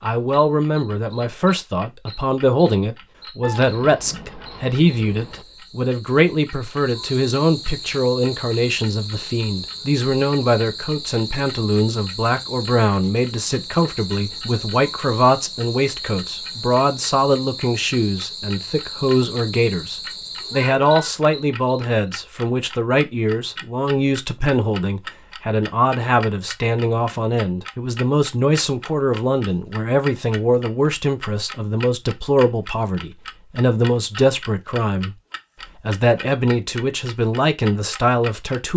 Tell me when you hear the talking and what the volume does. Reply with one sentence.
You can hear the talking from 0.0 to 35.1 s, at a steady volume; and briefly from 35.8 to 38.7 s.